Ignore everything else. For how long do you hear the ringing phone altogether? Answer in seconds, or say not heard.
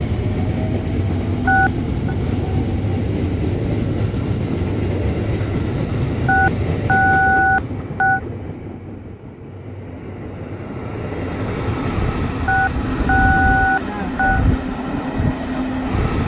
5 s.